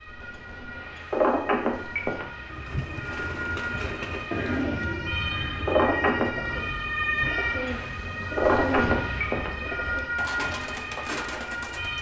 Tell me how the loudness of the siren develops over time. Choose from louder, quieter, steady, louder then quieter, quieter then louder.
louder.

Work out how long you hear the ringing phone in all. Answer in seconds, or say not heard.
3 s.